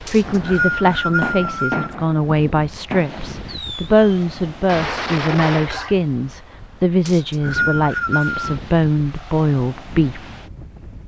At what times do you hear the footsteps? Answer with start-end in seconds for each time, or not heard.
not heard.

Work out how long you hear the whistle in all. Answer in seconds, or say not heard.
3 s.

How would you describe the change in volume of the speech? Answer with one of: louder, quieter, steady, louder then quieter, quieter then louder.
steady.